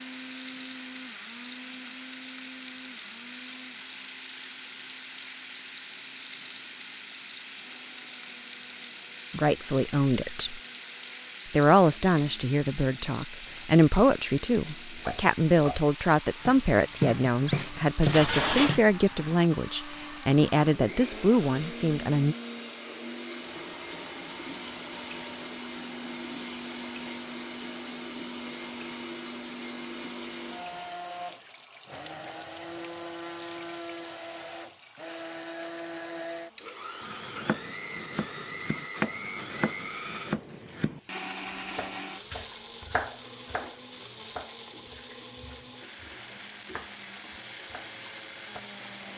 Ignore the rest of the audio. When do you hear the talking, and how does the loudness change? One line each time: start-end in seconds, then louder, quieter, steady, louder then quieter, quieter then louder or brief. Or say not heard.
9.3-10.6 brief
11.5-22.4 steady.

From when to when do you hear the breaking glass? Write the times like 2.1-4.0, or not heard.
17.4-18.8.